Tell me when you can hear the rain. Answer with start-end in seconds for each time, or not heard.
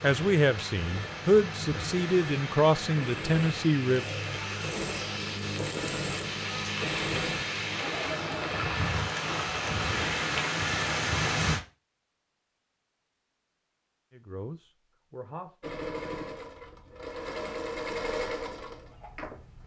0.0-11.6.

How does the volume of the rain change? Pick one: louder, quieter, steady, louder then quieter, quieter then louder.
louder.